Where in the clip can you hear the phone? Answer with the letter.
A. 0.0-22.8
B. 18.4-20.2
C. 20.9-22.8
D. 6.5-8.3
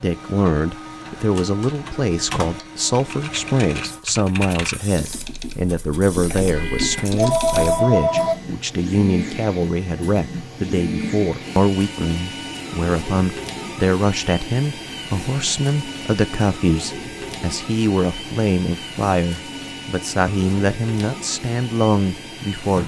D.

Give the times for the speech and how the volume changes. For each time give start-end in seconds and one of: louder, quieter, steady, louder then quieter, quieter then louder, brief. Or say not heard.
0.0-22.8 steady.